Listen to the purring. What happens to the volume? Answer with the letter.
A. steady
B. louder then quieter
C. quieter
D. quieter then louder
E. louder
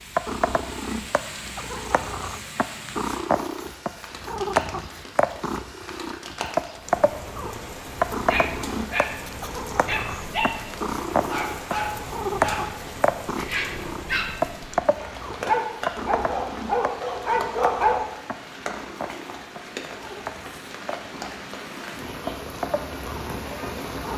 C.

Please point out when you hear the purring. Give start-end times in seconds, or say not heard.
0.1-24.1.